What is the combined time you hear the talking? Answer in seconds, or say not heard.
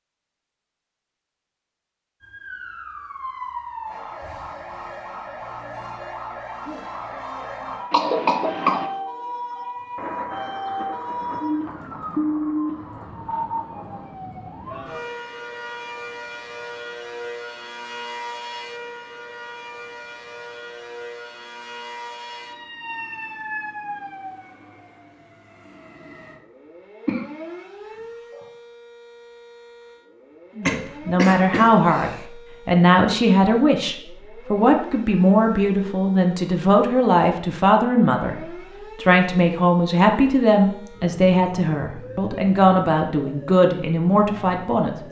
14 s.